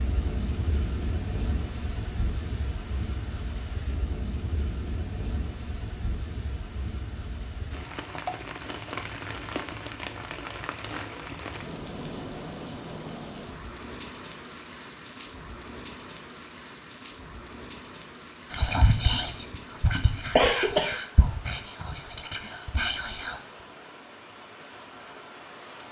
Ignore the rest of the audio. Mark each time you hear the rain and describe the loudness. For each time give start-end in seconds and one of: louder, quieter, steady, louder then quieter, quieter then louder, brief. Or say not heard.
0.0-25.8 quieter.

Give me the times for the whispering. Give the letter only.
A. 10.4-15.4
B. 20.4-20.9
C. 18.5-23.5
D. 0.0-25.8
C.